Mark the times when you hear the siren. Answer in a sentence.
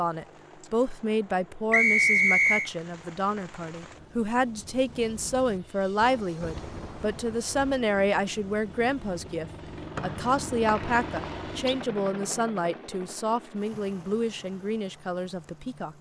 The siren can't be heard in this clip.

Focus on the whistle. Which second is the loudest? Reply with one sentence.
The volume of the whistle peaks at 2 seconds.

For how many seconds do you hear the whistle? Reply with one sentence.
You can hear the whistle for 3 seconds altogether.